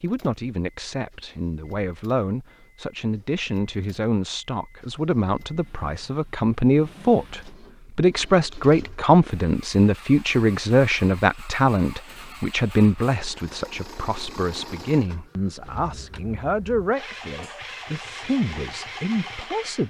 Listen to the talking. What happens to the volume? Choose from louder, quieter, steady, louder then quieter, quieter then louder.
louder then quieter.